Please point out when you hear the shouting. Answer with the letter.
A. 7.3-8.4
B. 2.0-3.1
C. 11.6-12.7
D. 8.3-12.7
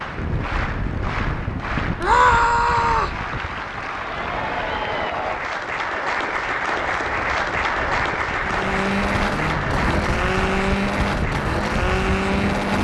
B.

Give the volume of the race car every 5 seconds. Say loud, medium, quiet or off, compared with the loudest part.
off, loud, loud.